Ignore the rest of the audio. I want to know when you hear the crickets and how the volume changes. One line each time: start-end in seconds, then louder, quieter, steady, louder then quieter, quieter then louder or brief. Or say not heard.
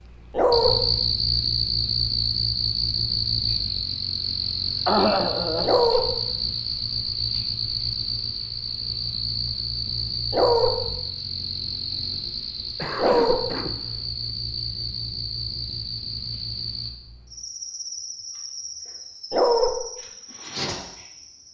0.0-21.5 quieter.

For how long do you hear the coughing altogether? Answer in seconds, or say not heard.
2 s.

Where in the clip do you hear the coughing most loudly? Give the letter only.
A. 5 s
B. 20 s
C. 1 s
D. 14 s
A.